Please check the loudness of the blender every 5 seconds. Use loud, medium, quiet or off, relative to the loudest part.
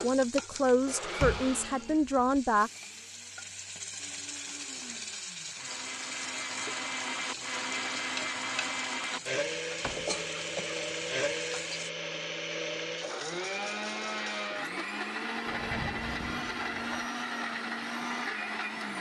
medium, loud, loud, loud.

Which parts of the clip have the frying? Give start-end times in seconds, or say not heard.
0.0-11.9.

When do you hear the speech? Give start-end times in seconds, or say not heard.
0.0-2.7.